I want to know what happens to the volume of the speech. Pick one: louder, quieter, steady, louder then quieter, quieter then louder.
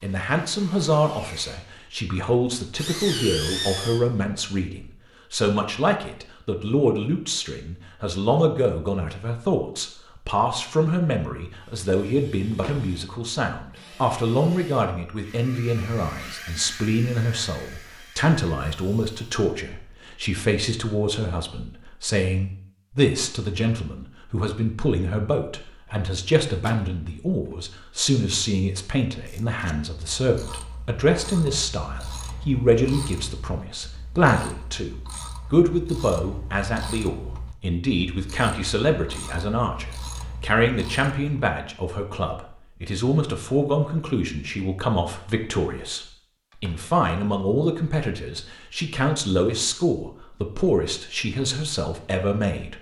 steady.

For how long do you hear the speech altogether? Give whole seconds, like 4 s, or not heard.
53 s.